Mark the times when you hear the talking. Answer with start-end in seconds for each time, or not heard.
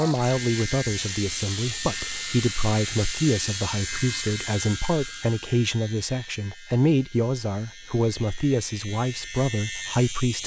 0.0-10.4.